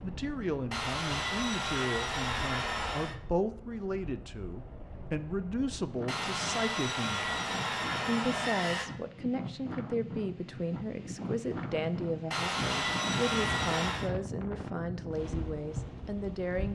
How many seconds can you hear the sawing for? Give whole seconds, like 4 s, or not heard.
7 s.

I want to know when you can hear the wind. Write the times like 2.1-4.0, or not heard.
0.0-16.6.